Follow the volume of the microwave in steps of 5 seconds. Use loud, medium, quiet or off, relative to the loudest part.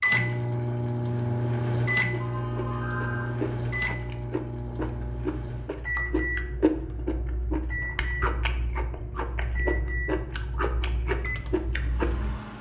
loud, medium, quiet.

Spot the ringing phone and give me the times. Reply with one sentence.
You can hear the ringing phone from 2.2 to 3.4 s.